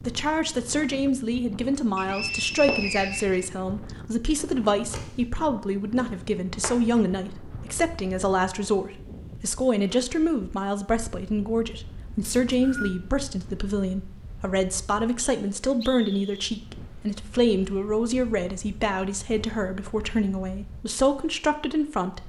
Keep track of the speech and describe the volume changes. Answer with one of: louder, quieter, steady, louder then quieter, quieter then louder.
steady.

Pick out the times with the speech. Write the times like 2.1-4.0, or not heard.
0.1-22.2.